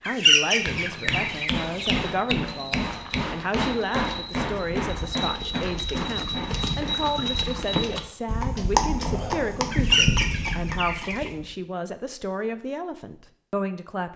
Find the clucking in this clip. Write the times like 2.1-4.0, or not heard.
0.1-2.0, 9.7-11.3.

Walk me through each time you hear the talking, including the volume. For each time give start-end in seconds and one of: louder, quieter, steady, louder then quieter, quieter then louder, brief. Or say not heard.
0.0-14.1 steady.